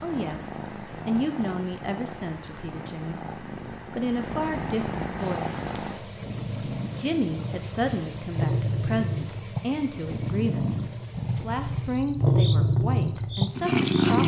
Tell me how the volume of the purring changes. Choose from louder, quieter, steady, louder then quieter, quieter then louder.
louder.